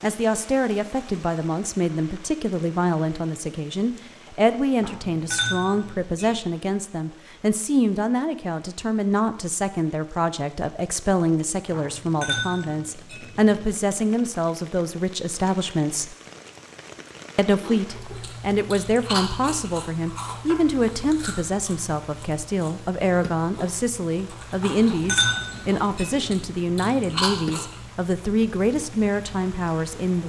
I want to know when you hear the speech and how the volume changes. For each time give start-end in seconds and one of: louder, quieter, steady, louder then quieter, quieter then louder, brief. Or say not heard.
0.0-16.1 steady
17.4-30.2 steady.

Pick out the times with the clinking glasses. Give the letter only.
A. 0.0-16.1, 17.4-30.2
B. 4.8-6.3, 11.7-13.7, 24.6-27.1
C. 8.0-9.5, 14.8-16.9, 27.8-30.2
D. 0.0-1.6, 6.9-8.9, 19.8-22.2
B.